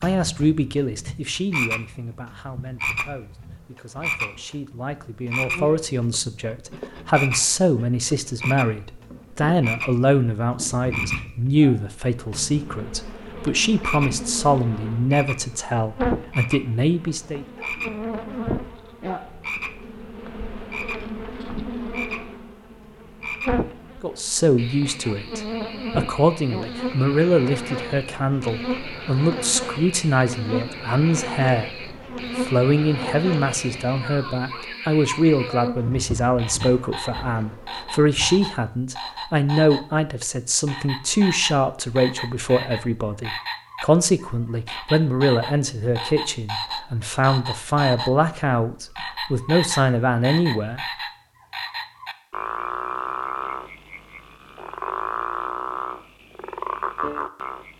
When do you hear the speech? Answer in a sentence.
The speech can be heard from 0.0 to 17.4 s and from 24.0 to 50.8 s.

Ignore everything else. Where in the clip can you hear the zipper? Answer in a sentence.
You can't hear the zipper here.